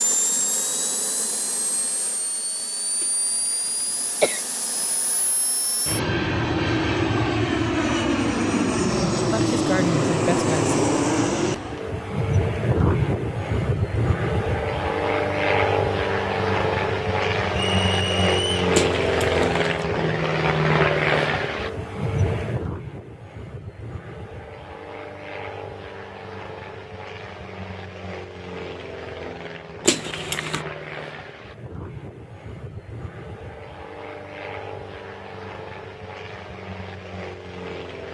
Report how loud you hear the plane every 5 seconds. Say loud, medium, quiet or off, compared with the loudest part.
medium, loud, loud, loud, loud, quiet, quiet, quiet.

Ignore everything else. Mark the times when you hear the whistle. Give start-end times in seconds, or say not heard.
17.5-18.6.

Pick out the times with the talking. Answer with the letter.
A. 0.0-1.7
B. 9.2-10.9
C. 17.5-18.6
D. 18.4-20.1
B.